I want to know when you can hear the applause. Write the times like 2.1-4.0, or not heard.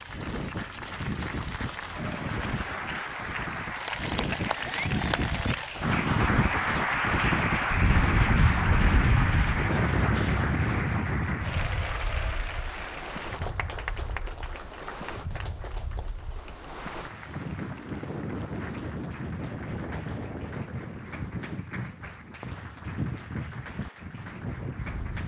0.0-25.2.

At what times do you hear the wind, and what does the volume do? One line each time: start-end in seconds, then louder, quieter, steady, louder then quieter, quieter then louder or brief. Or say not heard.
0.0-25.2 louder then quieter.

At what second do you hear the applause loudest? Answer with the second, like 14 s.
7 s.